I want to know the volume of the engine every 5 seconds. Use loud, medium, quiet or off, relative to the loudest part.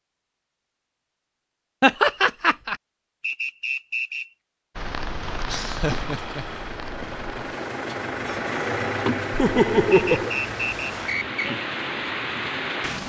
off, loud, medium.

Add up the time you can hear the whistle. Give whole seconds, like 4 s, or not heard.
3 s.